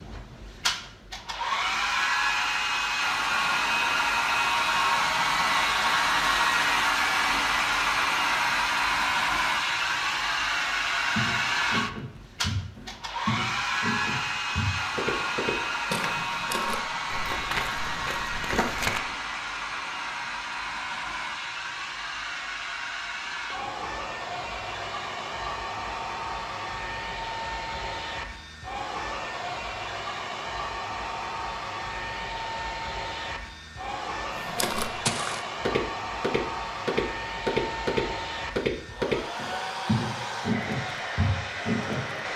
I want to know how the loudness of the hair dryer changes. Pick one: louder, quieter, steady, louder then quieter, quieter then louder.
quieter.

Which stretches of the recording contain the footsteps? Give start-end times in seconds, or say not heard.
11.1-19.0, 34.4-42.3.